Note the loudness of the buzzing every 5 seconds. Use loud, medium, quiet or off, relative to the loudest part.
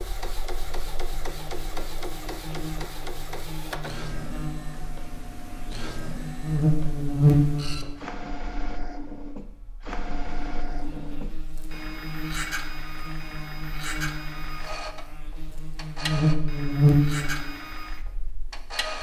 quiet, loud, quiet, loud.